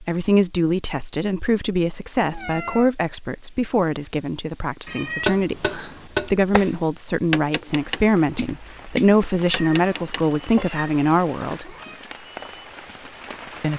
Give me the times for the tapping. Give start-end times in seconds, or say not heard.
5.2-10.7.